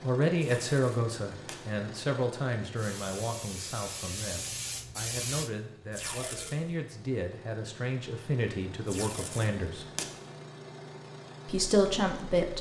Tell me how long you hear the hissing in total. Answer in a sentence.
You can hear the hissing for 3 seconds altogether.